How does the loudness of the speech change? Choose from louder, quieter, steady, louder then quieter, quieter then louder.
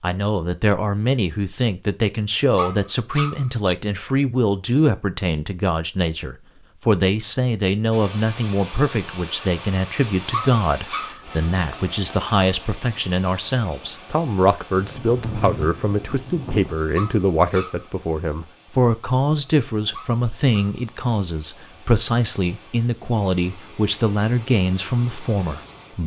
steady.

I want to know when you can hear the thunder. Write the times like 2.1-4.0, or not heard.
14.8-16.8.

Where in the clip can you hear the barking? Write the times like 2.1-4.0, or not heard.
2.5-3.5, 10.3-11.2, 16.9-17.9, 19.9-20.8.